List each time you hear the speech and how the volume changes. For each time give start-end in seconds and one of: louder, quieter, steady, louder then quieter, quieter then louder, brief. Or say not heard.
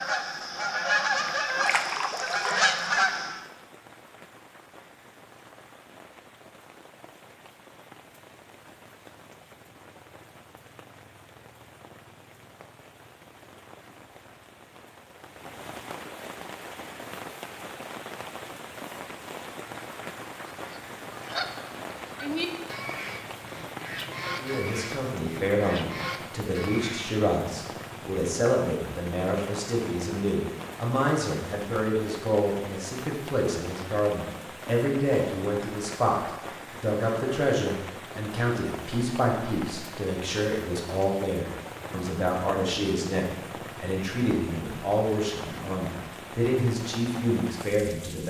24.4-48.2 steady.